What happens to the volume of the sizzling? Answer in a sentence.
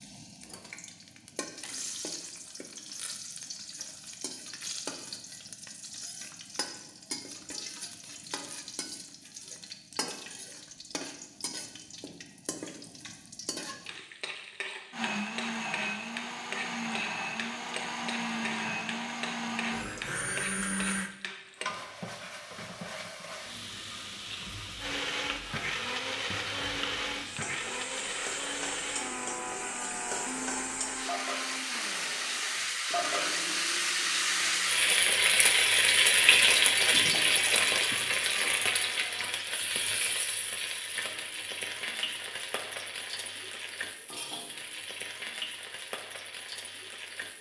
The loudness of the sizzling goes up, then down.